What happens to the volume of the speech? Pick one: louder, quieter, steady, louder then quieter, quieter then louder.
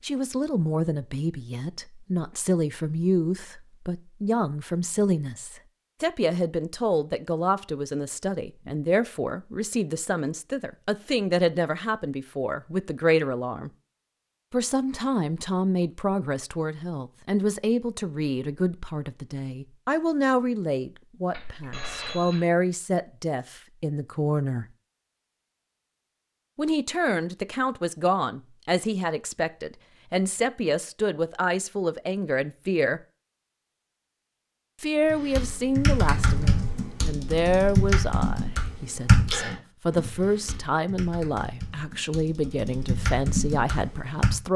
steady.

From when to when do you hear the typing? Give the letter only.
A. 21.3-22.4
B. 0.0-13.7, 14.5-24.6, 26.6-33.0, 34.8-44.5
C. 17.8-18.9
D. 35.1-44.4
D.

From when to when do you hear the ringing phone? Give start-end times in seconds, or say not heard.
21.3-22.4.